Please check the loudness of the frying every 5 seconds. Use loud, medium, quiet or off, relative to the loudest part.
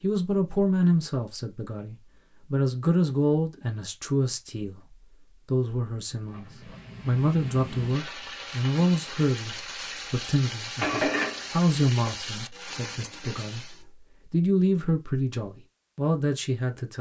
off, medium, loud, off.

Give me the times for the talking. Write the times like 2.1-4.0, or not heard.
0.0-16.9.